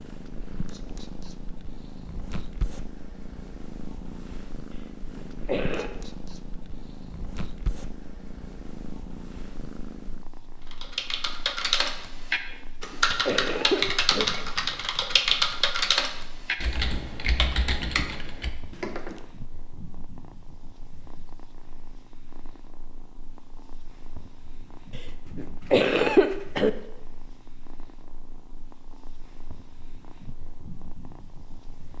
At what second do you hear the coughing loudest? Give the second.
26 s.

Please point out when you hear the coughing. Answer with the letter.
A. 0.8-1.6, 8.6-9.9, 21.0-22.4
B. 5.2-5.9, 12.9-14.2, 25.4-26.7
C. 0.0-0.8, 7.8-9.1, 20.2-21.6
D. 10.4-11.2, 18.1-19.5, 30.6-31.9
B.